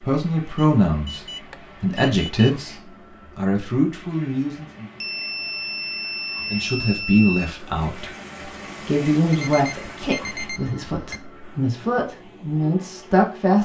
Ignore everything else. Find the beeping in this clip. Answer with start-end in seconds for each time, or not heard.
0.6-2.5, 5.0-7.5, 9.3-11.2.